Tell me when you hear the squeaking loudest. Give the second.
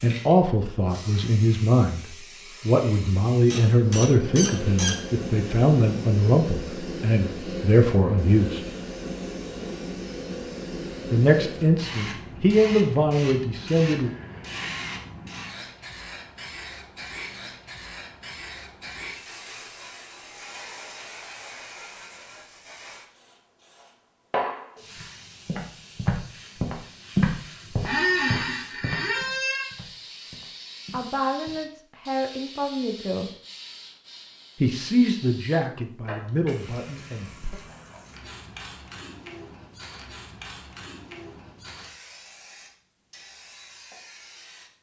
28 s.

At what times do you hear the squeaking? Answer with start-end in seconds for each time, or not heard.
3.5-5.0, 27.9-29.7.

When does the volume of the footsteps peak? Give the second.
27 s.